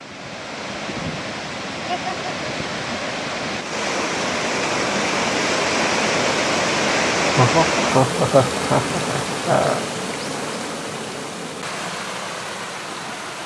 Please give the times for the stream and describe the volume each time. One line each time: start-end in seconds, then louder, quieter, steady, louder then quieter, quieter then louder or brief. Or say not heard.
0.0-13.4 louder then quieter.